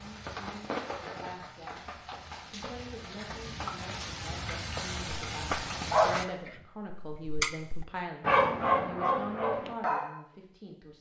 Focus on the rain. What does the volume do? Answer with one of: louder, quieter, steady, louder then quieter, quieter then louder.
quieter then louder.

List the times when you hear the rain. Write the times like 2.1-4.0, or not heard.
0.0-6.2.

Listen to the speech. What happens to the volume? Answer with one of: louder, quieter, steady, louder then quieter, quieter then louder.
louder.